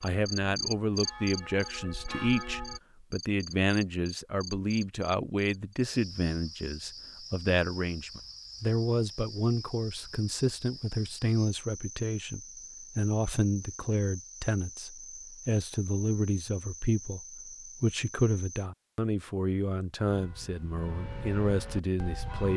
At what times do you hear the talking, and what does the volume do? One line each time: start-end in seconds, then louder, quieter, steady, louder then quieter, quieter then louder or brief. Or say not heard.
0.0-22.5 steady.